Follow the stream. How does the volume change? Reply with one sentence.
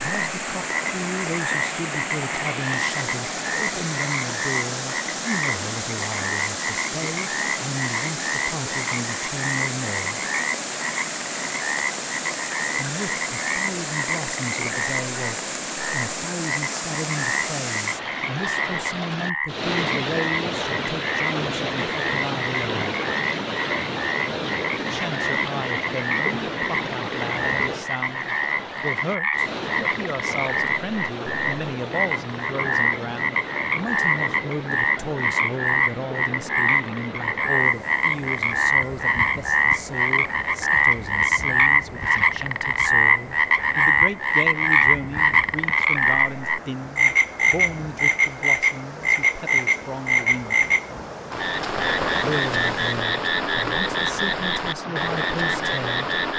The loudness of the stream goes down.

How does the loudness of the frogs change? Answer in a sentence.
The volume of the frogs goes up.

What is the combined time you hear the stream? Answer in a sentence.
The stream can be heard for 56 seconds in total.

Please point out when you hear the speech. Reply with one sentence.
The speech can be heard from 0.0 to 10.2 s, from 12.8 to 22.9 s, from 24.7 to 50.6 s and from 52.2 to 56.1 s.